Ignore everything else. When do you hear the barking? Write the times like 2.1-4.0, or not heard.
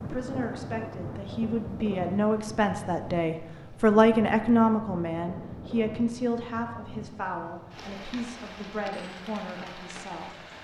not heard.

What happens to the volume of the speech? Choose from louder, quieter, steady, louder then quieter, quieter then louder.
louder then quieter.